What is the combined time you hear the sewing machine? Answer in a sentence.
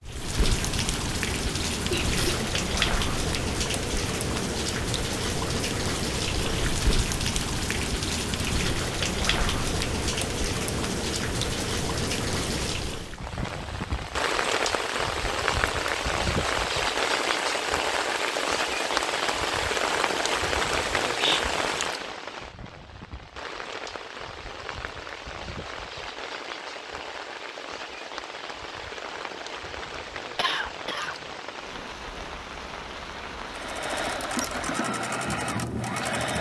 You can hear the sewing machine for 3 seconds altogether.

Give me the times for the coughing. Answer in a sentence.
The coughing can be heard from 1.9 to 2.5 s and from 30.4 to 31.1 s.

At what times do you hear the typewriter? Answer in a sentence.
The typewriter can't be heard in this clip.